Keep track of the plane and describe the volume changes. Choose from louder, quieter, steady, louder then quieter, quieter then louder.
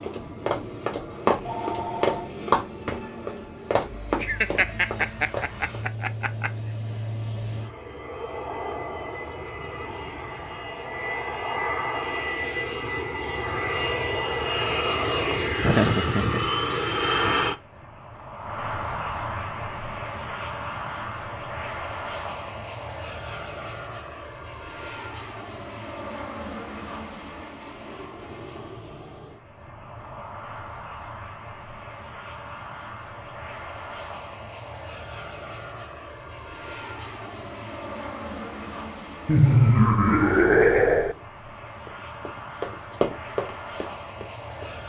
louder then quieter.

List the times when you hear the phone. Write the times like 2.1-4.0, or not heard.
1.4-2.3.